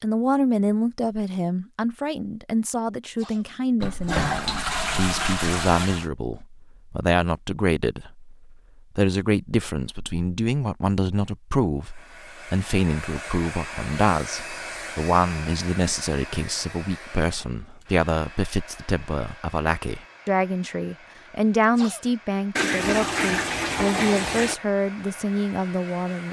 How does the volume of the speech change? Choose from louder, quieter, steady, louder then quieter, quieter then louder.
steady.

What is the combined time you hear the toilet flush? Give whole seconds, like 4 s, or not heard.
4 s.